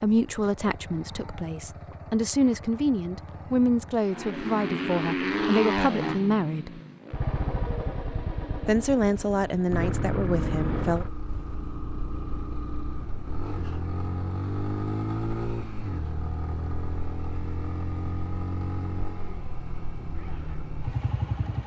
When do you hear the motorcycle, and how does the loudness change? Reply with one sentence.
The motorcycle can be heard from 0.0 to 21.6 s, getting louder then quieter.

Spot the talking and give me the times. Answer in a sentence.
The talking can be heard from 0.0 to 6.8 s and from 8.7 to 11.1 s.